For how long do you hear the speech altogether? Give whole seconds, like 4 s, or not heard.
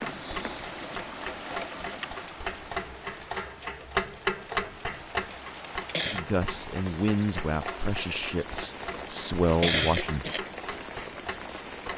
4 s.